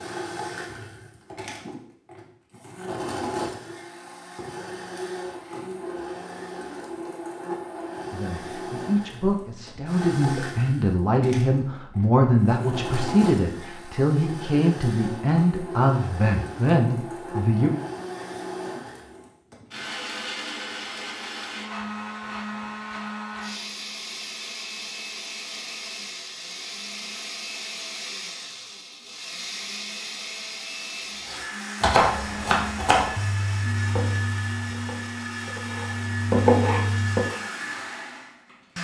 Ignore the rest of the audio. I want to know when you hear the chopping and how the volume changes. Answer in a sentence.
You can hear the chopping from 31.2 to 37.3 s, getting quieter then louder.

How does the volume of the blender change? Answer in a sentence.
The volume of the blender stays about the same.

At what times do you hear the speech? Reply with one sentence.
You can hear the speech from 8.1 to 17.7 s.